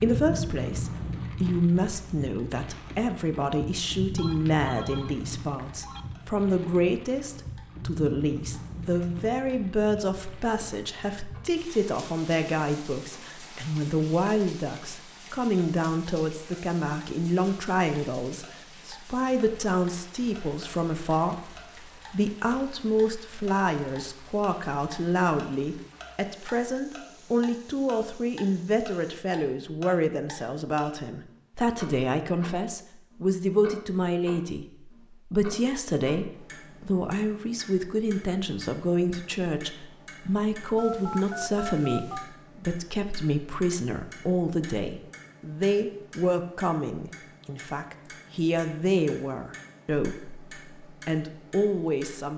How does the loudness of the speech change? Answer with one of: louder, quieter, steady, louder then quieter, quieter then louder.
steady.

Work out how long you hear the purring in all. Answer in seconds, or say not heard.
not heard.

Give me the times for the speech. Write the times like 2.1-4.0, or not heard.
0.0-52.3.